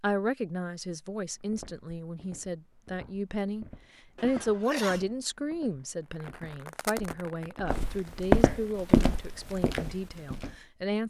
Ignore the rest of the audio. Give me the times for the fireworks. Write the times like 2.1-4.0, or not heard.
6.0-8.2.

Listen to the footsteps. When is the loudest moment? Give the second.
8 s.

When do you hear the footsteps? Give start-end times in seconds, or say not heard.
1.3-10.5.